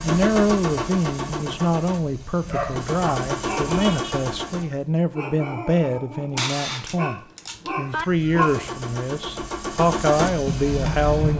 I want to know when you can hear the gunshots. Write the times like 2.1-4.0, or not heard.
6.3-8.1.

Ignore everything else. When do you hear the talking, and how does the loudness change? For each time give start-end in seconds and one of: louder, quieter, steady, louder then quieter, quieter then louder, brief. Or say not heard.
0.0-11.3 steady.